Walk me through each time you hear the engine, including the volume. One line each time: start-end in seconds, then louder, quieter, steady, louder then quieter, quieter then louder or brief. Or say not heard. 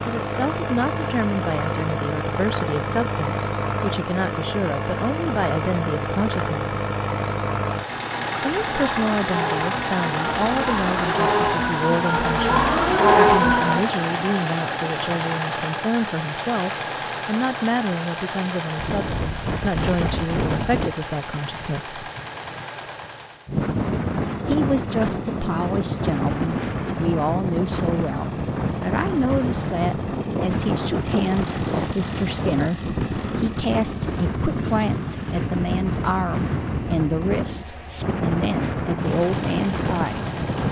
0.0-40.6 quieter.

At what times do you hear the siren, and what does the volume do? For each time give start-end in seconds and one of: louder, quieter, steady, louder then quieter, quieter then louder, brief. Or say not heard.
8.0-13.8 louder.